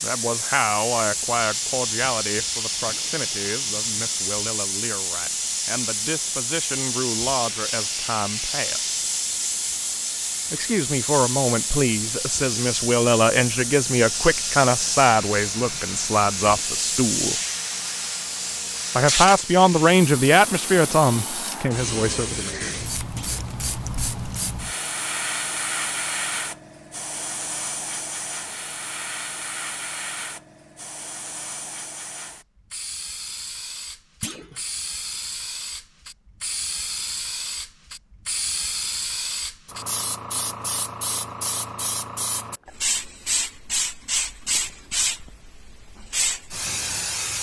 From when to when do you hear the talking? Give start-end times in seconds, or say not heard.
0.0-8.9, 10.5-17.4, 18.9-22.7.